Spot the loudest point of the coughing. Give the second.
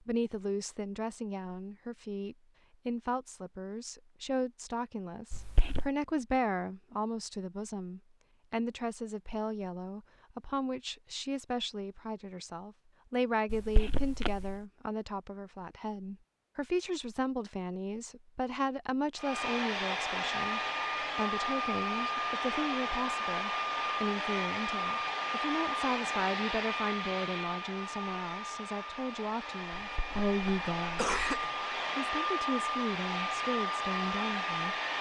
31 s.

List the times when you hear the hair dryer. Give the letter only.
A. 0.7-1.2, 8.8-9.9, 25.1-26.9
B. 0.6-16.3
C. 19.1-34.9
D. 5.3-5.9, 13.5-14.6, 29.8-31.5
C.